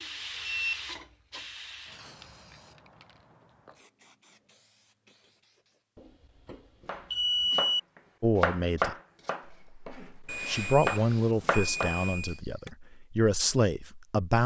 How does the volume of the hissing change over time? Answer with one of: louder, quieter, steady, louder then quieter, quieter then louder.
quieter.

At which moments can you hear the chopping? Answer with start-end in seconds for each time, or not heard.
6.8-7.8, 8.4-11.9.